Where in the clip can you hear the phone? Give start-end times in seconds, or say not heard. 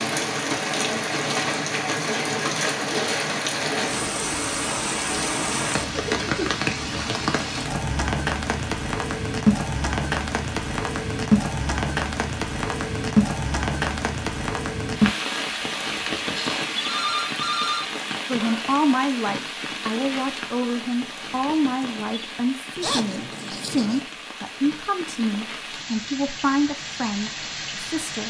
16.4-17.9.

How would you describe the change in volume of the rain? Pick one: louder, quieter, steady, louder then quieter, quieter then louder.
quieter.